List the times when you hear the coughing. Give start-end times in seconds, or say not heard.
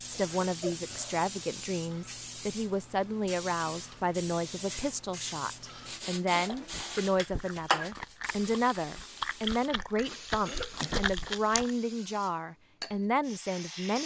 0.1-0.8, 6.3-7.0, 10.4-11.1.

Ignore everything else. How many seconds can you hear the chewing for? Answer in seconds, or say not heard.
5 s.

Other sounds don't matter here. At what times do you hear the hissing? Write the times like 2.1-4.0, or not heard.
0.0-14.0.